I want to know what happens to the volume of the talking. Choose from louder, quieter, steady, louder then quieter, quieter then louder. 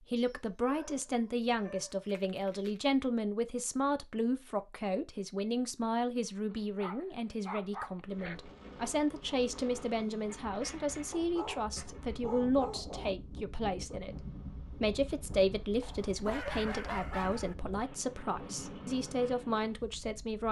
steady.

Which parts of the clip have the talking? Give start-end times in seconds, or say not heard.
0.0-20.4.